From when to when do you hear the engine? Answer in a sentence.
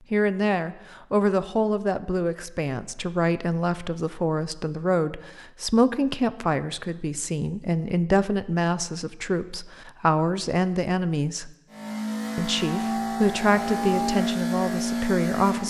The engine can be heard from 11.7 to 15.6 s.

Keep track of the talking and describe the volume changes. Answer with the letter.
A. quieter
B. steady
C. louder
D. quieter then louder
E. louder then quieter
B.